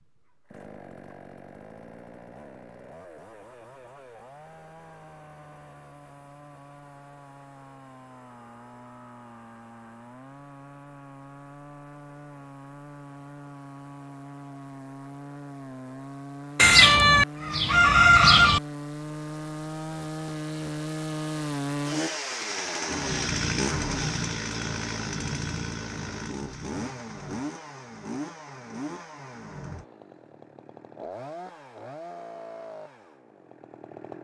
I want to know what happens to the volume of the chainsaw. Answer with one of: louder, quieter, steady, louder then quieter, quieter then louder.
louder then quieter.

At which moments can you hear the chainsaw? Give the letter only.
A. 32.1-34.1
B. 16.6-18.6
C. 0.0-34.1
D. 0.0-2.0
C.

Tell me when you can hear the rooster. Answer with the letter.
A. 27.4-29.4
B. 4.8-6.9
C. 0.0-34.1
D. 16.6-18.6
D.